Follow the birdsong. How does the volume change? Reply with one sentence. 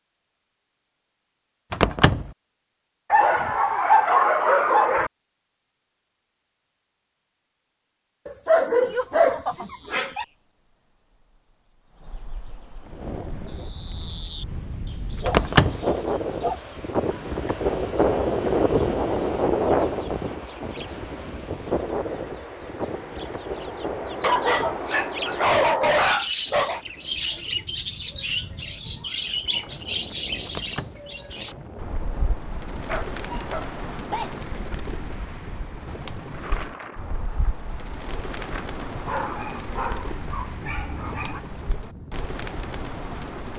The volume of the birdsong goes up, then down.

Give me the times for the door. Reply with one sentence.
The door can be heard from 1.7 to 2.3 s, from 15.2 to 15.8 s and from 30.4 to 31.1 s.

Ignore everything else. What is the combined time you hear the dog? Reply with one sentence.
You can hear the dog for 12 seconds altogether.